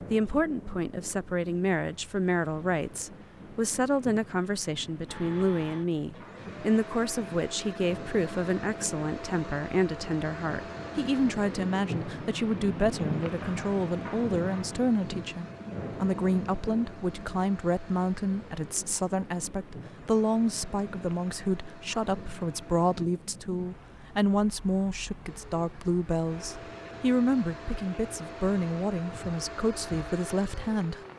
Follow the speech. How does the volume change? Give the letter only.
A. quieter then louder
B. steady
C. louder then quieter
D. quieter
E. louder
B.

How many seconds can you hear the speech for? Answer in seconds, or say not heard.
31 s.